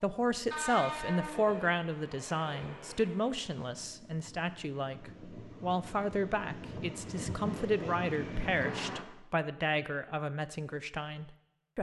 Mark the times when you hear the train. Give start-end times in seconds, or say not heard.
0.3-9.1.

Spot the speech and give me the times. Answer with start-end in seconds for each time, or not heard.
0.0-11.7.